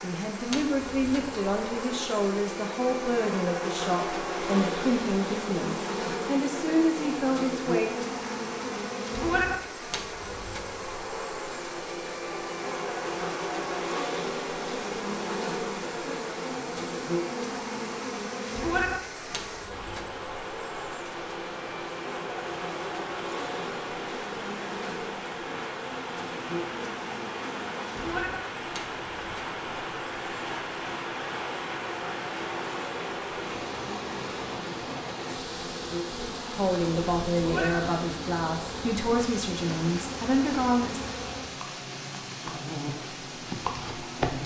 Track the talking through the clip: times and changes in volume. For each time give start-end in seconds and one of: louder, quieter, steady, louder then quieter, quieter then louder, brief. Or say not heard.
0.0-7.9 steady
36.5-41.0 steady.